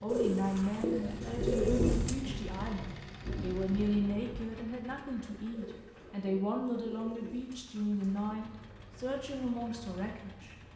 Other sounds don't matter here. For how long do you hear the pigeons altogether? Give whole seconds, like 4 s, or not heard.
5 s.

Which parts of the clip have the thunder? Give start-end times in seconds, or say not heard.
1.1-4.5.